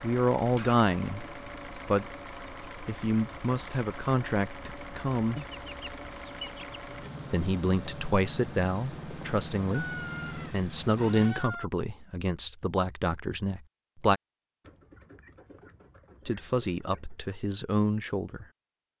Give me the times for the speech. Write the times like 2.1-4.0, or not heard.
0.0-2.0, 2.9-5.4, 7.3-14.2, 16.2-18.4.